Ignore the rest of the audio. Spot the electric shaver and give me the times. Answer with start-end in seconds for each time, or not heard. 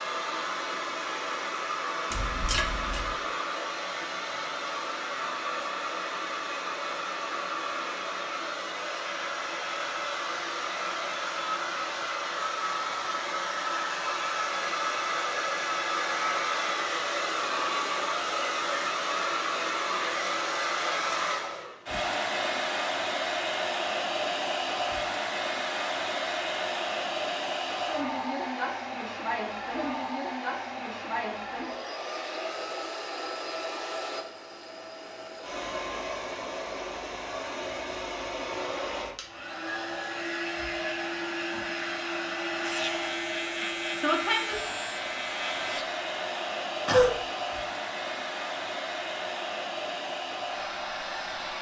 42.6-45.9.